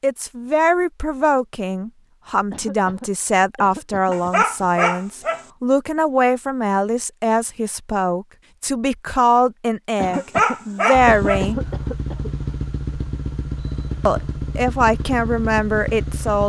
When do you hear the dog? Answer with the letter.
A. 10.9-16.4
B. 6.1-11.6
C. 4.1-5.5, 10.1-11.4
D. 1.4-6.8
C.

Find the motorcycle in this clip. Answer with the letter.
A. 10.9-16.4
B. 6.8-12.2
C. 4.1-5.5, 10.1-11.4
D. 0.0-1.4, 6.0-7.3
A.